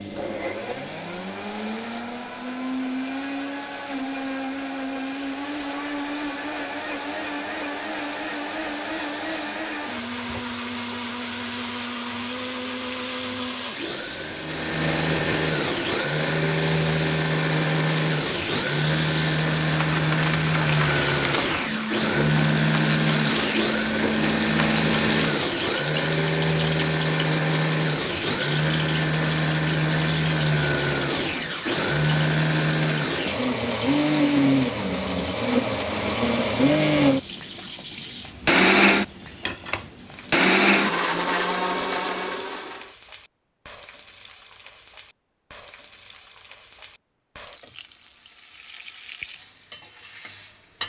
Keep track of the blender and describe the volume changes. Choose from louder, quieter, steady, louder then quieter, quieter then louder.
louder.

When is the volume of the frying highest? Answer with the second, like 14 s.
25 s.